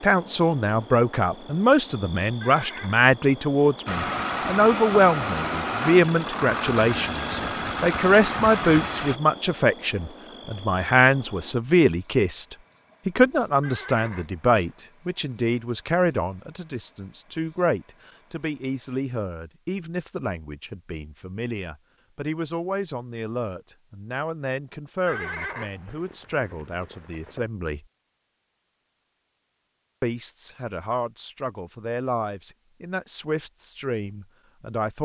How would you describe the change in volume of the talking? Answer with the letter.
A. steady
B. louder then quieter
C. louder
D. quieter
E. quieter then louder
D.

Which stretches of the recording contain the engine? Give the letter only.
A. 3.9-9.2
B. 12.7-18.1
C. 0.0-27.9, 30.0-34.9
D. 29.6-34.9
A.